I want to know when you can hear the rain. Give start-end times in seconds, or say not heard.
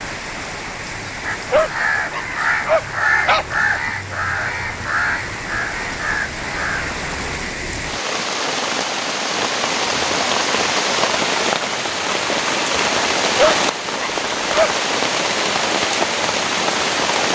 0.0-17.2.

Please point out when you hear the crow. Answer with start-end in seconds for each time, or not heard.
1.2-7.0.